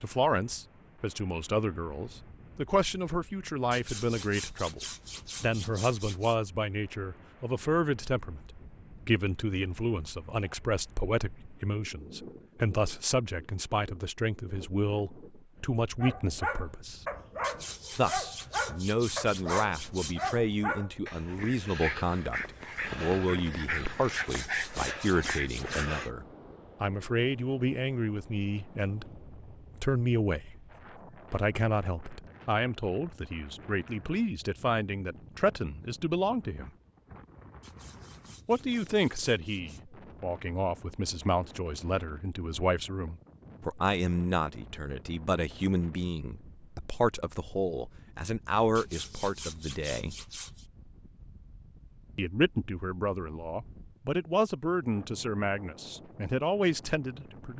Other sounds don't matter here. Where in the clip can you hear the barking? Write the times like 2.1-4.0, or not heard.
16.0-26.1.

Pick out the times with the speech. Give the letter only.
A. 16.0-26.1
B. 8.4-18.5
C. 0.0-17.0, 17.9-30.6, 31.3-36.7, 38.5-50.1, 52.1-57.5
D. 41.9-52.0
C.